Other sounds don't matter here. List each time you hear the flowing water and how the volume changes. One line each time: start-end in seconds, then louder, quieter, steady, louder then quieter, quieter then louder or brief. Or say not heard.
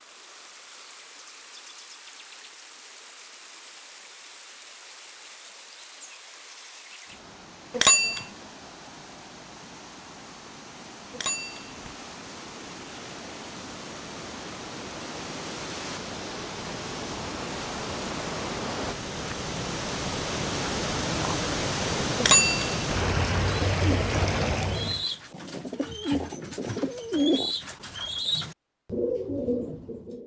0.0-25.1 louder.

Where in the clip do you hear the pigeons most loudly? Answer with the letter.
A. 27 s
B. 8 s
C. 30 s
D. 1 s
A.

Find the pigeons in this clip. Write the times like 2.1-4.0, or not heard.
23.6-30.2.